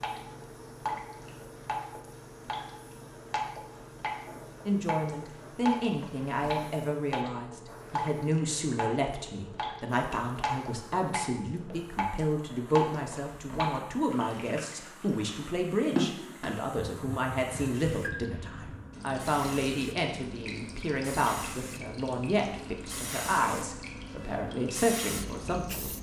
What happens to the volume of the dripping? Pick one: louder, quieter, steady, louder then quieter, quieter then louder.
quieter.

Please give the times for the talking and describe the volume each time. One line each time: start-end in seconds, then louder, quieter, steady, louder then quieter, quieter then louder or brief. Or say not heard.
4.7-25.9 steady.